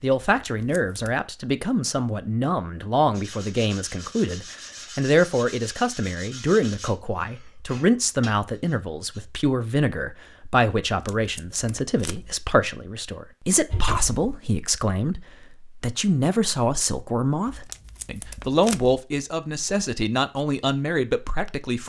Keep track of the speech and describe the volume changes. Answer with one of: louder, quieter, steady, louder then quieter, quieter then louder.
steady.